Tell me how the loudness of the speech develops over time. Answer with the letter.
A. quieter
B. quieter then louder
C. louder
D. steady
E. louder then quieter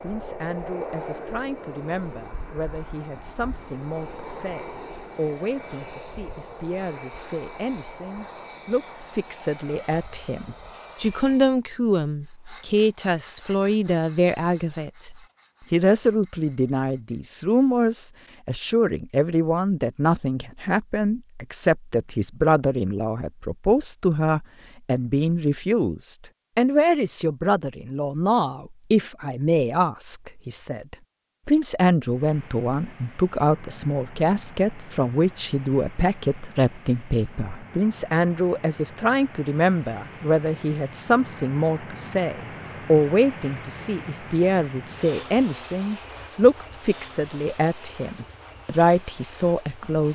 C.